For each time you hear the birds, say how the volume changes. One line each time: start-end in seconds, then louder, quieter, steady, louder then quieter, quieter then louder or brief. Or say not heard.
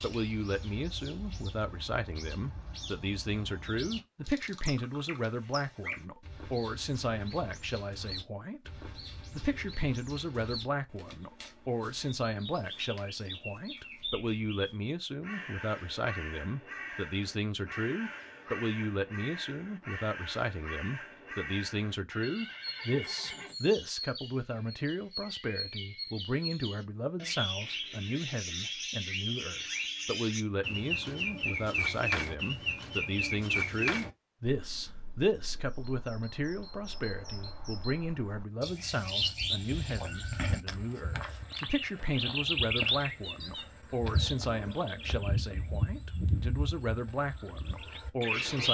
0.0-48.6 louder.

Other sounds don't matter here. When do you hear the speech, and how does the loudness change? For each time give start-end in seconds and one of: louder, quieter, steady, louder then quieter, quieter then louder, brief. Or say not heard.
0.0-48.6 steady.